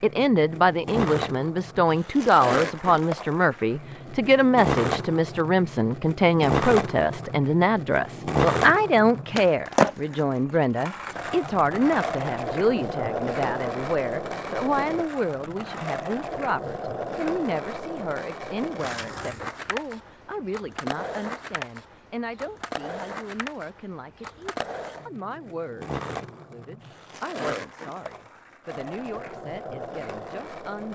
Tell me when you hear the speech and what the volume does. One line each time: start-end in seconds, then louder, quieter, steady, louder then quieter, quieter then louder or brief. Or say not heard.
0.0-30.9 quieter.